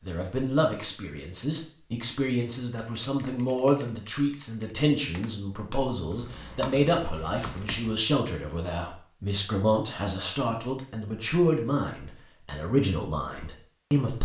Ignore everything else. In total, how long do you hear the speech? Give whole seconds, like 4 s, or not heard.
14 s.